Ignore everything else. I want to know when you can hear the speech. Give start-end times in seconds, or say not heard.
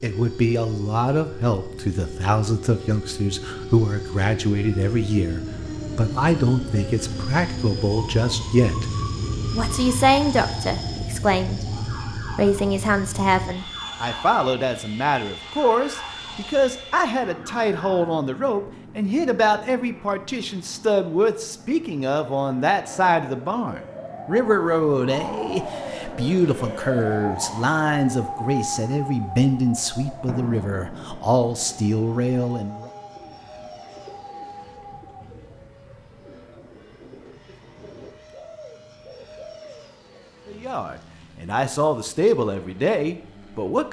0.0-32.9, 40.5-43.8.